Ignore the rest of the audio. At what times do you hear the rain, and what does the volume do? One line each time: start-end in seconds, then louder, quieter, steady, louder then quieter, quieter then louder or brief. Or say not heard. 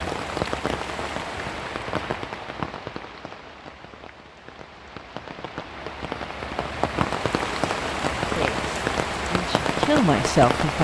0.0-10.7 quieter then louder.